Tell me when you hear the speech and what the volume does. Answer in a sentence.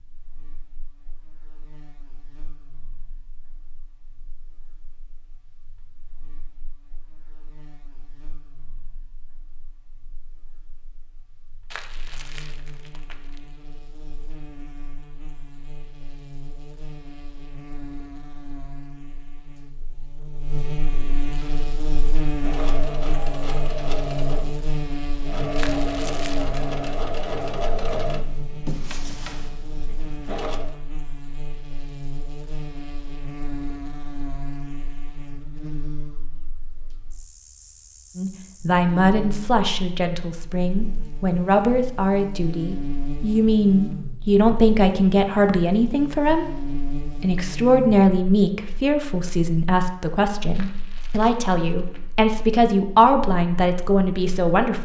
You can hear the speech from 38.1 to 54.7 s, at a steady volume.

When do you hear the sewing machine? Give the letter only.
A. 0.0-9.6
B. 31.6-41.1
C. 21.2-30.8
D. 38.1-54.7
C.